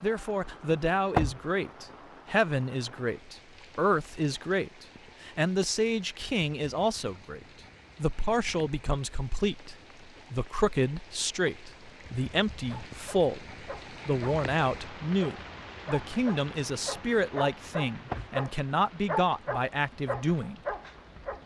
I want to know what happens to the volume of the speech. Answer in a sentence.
The loudness of the speech stays about the same.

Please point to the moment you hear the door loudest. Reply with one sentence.
The volume of the door peaks at 1 second.